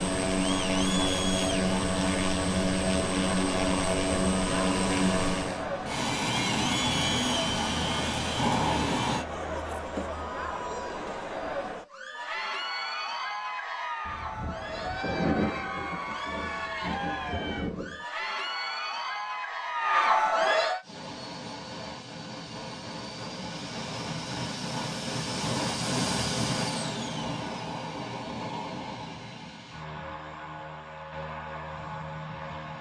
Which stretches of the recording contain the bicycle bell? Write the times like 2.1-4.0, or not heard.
not heard.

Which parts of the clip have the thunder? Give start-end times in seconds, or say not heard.
14.1-18.0.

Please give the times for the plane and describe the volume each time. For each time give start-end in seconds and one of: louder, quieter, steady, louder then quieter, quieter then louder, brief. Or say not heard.
0.0-9.2 steady
20.8-32.7 louder then quieter.